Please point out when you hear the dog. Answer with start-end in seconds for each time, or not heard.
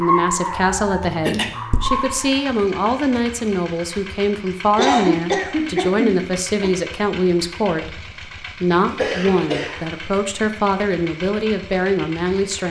0.0-2.5.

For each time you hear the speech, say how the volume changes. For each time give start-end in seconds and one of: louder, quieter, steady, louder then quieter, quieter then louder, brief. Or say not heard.
0.0-12.6 steady.